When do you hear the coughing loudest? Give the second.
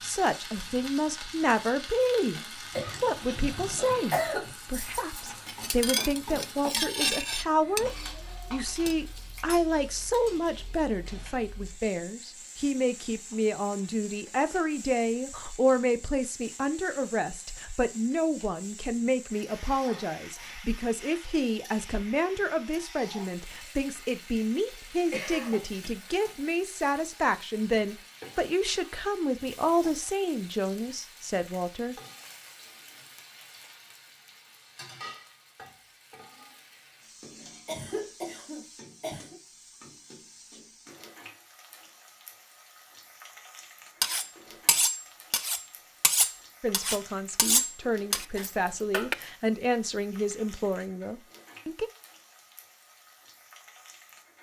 4 s.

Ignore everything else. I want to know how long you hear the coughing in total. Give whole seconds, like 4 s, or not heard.
5 s.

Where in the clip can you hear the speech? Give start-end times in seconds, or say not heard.
0.0-31.9, 46.6-51.9.